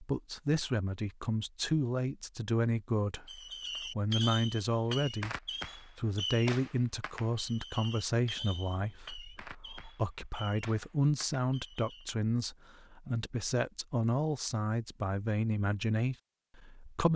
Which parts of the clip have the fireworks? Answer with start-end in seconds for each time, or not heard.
3.2-12.1.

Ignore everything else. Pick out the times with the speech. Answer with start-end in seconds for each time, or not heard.
0.0-17.1.